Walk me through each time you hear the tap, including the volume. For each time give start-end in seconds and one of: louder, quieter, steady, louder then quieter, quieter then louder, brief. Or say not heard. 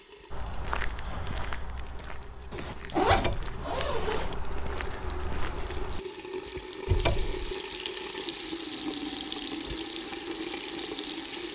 0.0-11.5 louder.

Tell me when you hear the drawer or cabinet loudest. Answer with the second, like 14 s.
7 s.